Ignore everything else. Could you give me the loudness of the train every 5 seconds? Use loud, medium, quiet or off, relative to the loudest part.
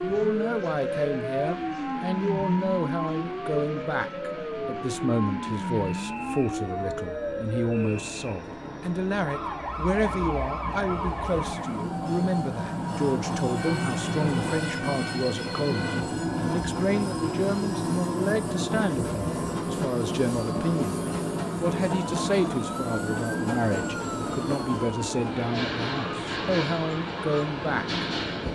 medium, medium, loud, loud, loud, loud.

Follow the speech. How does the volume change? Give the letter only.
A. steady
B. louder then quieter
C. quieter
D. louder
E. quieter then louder
A.